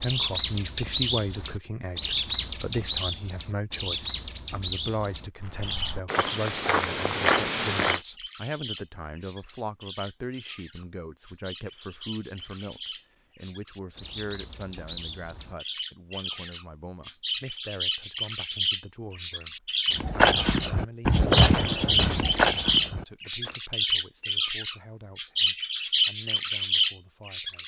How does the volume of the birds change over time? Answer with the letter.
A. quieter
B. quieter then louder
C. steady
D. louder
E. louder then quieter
B.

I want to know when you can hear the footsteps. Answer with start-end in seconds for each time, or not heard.
5.4-8.0, 19.9-23.6.